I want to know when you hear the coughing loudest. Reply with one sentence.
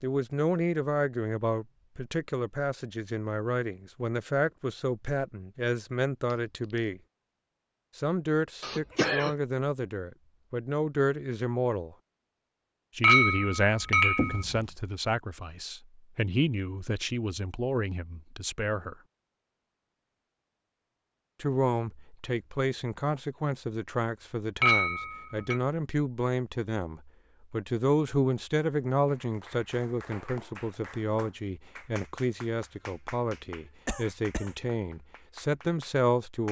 The volume of the coughing peaks at 9 seconds.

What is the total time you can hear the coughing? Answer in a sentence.
The coughing can be heard for 2 seconds in total.